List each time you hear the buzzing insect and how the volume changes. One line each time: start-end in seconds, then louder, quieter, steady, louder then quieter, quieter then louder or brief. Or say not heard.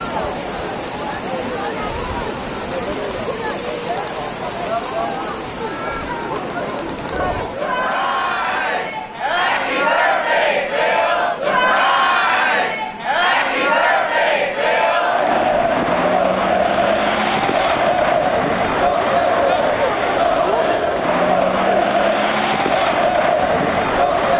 not heard.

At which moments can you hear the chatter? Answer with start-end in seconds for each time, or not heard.
0.0-24.3.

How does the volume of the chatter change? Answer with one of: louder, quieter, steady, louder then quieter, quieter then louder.
louder.